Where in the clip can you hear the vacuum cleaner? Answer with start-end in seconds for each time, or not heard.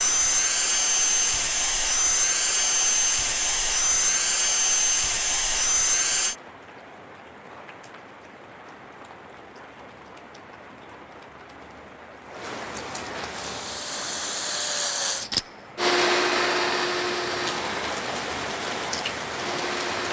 0.0-6.3, 13.3-20.0.